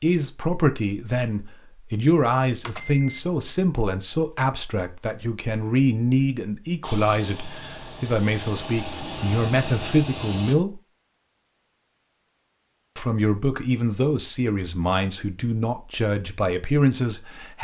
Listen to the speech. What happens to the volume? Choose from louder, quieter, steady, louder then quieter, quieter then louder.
steady.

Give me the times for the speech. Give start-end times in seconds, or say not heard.
0.0-10.8, 12.9-17.6.